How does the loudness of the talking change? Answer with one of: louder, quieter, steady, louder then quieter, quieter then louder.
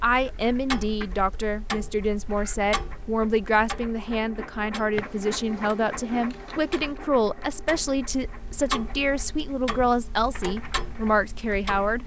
steady.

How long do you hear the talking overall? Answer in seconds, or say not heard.
12 s.